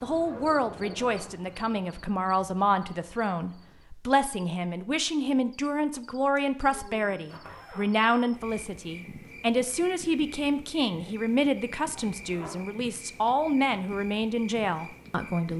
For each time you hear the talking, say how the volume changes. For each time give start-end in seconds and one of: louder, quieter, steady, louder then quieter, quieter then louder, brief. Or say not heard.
0.0-15.5 steady.